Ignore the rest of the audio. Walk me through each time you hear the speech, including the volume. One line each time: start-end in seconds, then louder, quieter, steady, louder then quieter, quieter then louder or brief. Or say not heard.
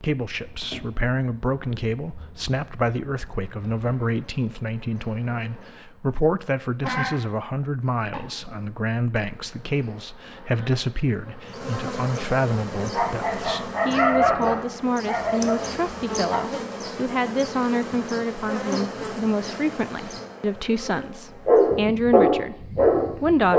0.0-23.5 steady.